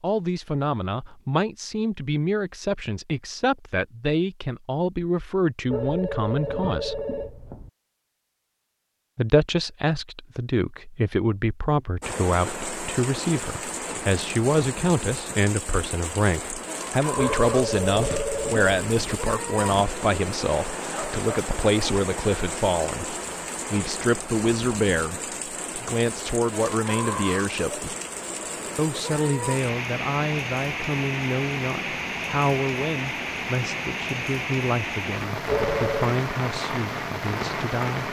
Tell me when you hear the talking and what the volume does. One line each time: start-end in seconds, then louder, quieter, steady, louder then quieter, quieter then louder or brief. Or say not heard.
0.0-7.0 steady
9.2-27.9 steady
28.8-38.0 steady.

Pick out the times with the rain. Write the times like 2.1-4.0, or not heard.
12.0-38.0.